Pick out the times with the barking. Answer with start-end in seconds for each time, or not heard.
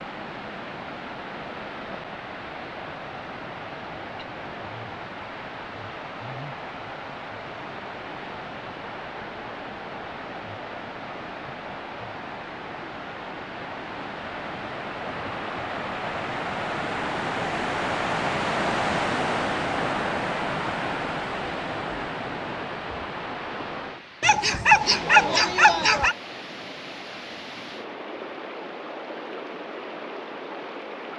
24.2-26.1.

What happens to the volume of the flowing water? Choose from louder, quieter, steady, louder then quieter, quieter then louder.
louder then quieter.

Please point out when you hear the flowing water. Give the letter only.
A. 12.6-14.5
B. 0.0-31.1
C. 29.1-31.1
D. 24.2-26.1
B.